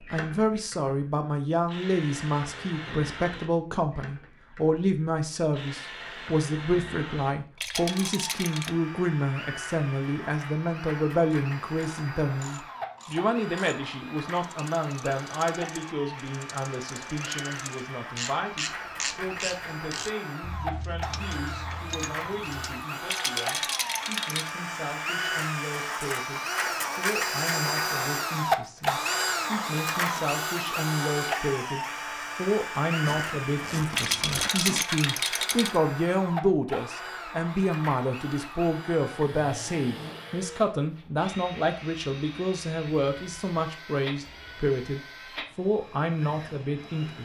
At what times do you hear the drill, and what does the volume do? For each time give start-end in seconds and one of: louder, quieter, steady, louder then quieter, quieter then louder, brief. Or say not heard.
0.0-47.2 louder then quieter.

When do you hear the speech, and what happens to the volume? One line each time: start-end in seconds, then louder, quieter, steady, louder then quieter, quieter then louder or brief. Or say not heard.
0.1-47.2 quieter then louder.